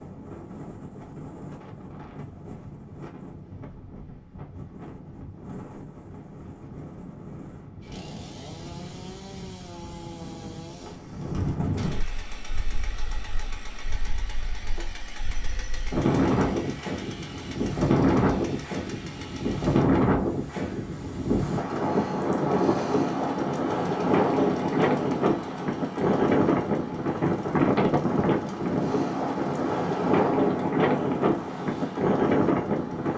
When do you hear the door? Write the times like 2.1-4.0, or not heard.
not heard.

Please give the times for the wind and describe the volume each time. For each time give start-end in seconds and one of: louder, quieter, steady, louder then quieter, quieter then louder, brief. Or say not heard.
0.0-33.1 louder.